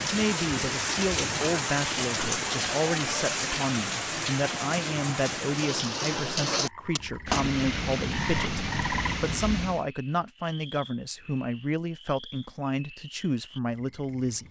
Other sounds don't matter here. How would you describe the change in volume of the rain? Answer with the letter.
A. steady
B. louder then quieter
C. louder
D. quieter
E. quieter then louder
A.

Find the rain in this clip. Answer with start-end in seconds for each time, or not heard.
0.0-9.8.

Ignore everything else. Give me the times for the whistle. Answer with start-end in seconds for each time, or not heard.
not heard.